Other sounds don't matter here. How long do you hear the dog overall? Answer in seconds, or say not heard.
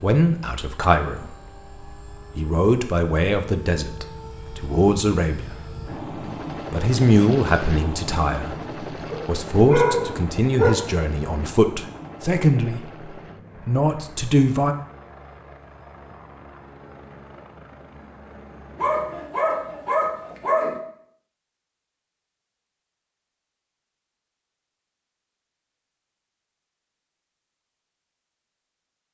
4 s.